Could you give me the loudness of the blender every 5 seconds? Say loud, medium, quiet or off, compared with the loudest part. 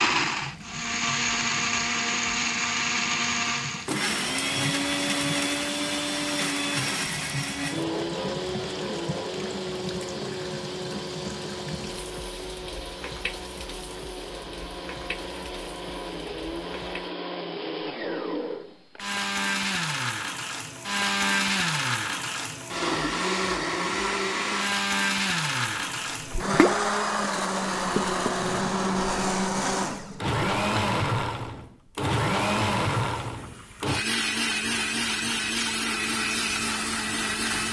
loud, loud, medium, medium, loud, loud, loud, loud.